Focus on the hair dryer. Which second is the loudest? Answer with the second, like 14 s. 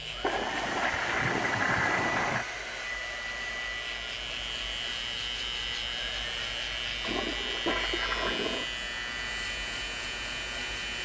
2 s.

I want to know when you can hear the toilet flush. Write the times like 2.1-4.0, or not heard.
0.2-2.5, 7.0-8.7.